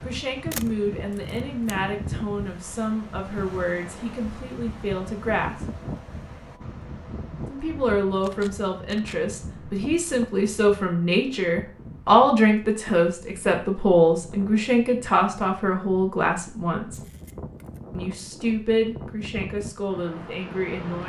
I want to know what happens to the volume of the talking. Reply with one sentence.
The volume of the talking goes up, then down.